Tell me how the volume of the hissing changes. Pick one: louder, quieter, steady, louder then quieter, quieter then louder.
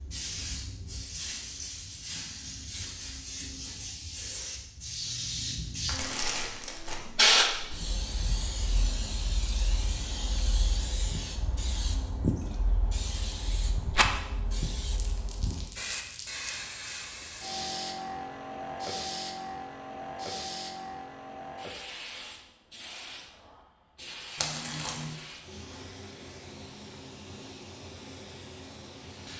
louder then quieter.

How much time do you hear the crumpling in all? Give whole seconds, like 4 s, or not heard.
4 s.